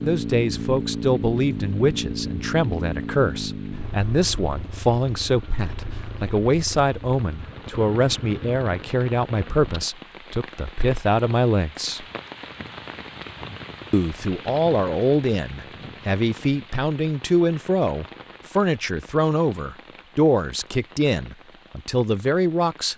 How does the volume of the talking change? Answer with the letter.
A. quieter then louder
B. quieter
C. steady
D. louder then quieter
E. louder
C.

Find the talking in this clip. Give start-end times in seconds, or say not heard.
0.0-12.1, 13.9-22.9.